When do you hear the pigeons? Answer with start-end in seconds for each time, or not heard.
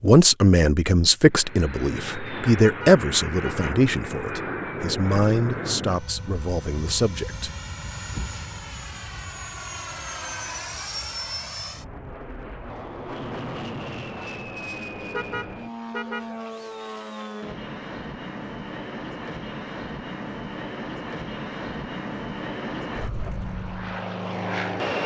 not heard.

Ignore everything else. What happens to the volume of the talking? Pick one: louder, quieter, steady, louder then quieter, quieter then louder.
quieter.